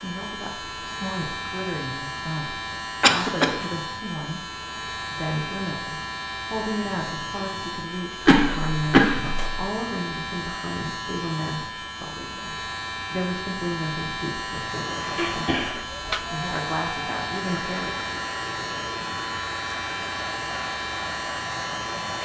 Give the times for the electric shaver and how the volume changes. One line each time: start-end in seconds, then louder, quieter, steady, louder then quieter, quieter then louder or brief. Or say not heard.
0.0-22.2 steady.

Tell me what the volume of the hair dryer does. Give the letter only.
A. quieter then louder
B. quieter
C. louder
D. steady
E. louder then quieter
D.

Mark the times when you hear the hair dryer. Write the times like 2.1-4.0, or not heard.
14.7-22.2.